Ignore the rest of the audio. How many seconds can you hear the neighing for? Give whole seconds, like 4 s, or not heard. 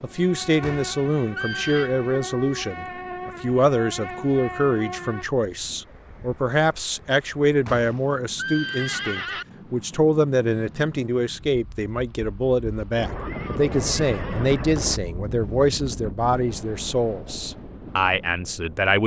5 s.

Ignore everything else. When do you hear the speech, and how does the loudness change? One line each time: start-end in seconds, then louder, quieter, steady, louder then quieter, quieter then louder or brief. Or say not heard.
0.0-19.0 steady.